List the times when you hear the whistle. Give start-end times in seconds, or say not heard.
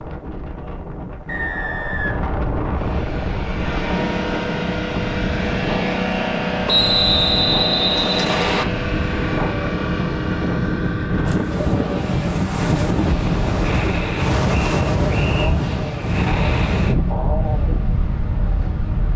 1.2-3.0, 6.7-8.7, 14.5-15.6.